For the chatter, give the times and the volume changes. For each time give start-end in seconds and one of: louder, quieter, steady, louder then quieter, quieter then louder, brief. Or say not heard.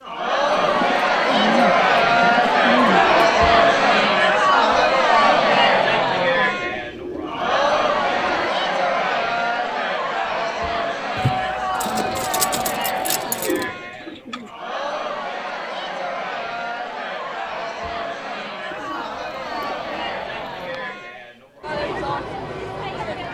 0.0-23.2 quieter.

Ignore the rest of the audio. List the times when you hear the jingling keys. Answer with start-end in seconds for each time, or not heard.
11.2-13.7.